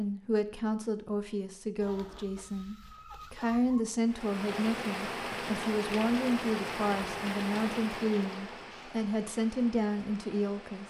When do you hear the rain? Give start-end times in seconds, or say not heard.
4.0-10.8.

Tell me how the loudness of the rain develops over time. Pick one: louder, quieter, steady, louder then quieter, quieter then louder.
quieter.